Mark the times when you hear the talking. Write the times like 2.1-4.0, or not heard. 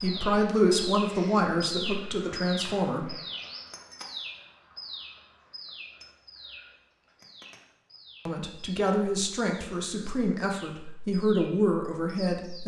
0.0-3.1, 8.2-12.6.